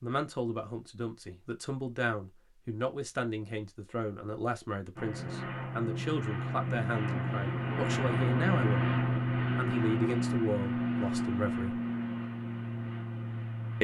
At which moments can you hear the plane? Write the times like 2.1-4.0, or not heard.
5.0-13.8.